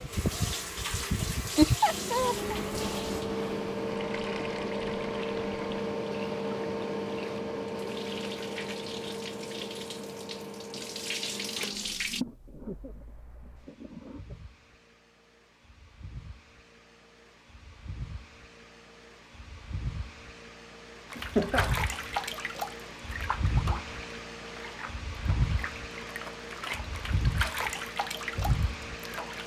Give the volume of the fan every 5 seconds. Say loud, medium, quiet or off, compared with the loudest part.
loud, loud, quiet, quiet, medium, loud.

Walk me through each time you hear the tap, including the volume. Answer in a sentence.
The tap can be heard from 0.0 to 12.2 s, getting quieter then louder; and from 21.1 to 29.4 s, getting quieter then louder.